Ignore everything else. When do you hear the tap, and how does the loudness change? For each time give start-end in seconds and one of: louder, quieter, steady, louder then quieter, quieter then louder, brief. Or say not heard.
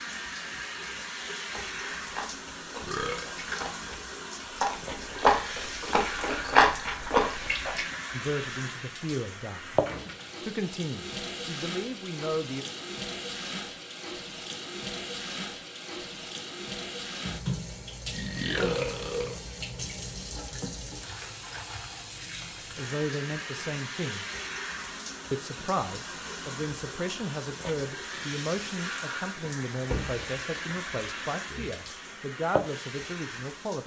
0.0-33.8 steady.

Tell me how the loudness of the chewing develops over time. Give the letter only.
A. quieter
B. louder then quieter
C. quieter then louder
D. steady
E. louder
E.